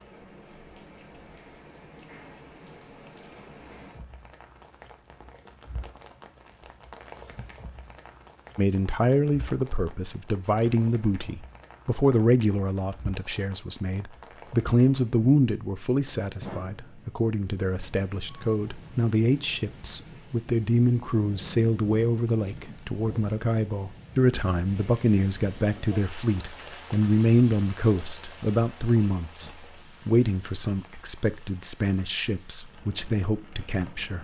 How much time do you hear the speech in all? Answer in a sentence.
You can hear the speech for 26 seconds altogether.